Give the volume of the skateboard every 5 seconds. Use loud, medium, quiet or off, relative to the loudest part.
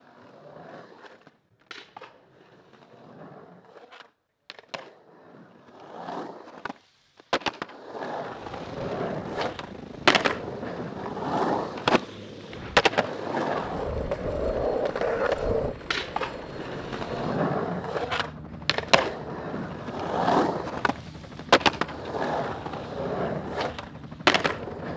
quiet, medium, loud, loud, loud.